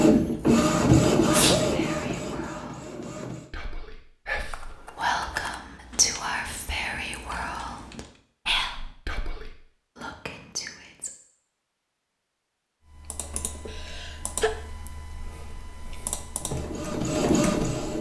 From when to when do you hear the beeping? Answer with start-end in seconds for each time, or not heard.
not heard.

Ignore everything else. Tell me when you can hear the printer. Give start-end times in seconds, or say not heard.
0.0-3.5, 16.3-17.9.